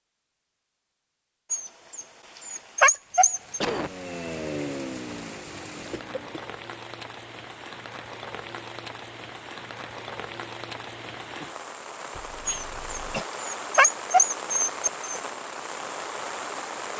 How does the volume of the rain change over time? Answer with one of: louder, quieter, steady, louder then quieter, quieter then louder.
louder.